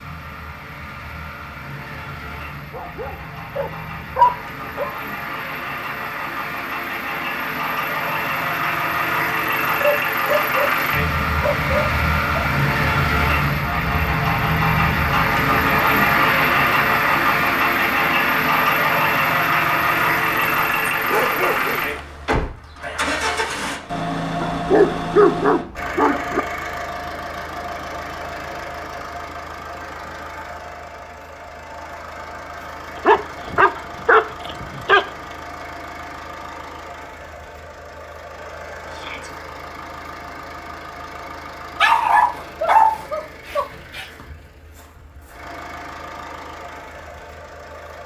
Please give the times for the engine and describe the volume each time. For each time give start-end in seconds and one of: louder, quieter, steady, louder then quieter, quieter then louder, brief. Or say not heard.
0.0-48.0 louder then quieter.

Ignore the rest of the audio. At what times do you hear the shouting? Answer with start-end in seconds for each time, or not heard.
38.9-39.3.